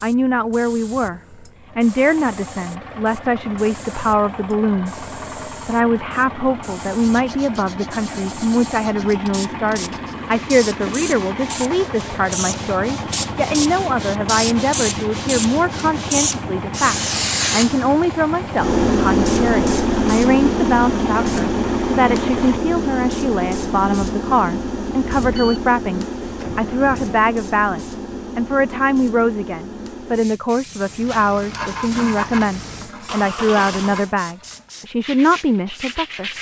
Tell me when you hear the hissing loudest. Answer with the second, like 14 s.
19 s.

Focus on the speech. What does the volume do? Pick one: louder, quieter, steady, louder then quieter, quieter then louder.
steady.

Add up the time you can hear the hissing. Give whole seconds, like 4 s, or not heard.
36 s.